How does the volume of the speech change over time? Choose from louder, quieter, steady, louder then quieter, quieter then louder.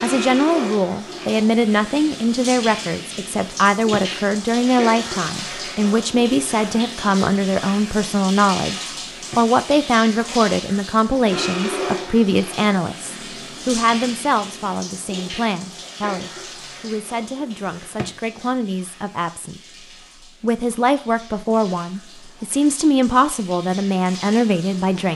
quieter then louder.